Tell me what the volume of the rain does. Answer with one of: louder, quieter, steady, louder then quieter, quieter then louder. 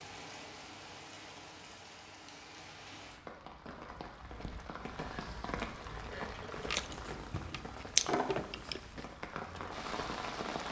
louder.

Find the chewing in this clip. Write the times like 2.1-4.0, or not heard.
6.5-9.1.